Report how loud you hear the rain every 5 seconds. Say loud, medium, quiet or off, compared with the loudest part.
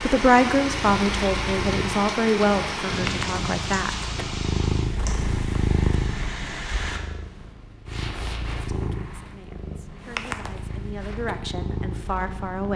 loud, medium, off.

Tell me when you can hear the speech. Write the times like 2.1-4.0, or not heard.
0.0-4.0, 8.6-12.7.